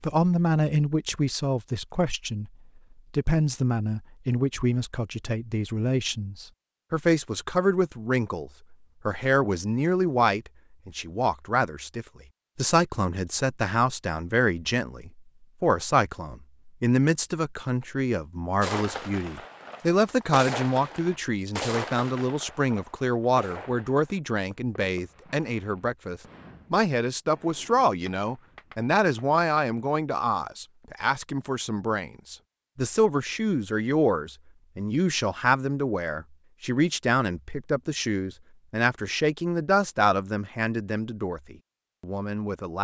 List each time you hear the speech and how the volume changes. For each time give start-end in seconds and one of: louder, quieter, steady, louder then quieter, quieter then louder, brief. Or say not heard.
0.0-42.7 steady.